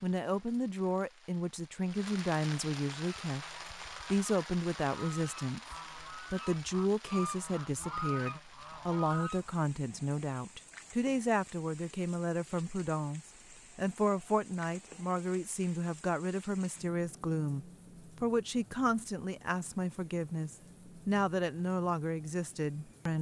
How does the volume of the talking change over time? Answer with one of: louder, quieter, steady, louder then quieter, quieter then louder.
steady.